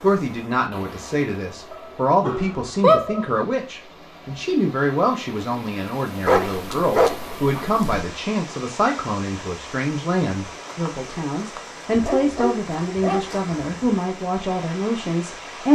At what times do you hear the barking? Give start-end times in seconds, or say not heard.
1.7-3.2, 6.2-8.1, 11.9-14.1.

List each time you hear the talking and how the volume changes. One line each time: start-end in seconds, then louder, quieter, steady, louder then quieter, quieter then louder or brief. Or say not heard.
0.0-15.6 steady.